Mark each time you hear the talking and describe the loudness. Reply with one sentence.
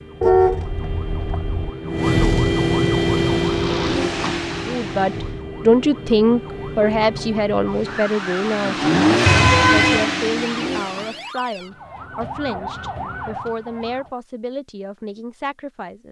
You can hear the talking from 4.7 to 16.0 s, getting quieter.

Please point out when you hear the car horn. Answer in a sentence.
The car horn can be heard from 0.2 to 1.7 s and from 9.2 to 10.1 s.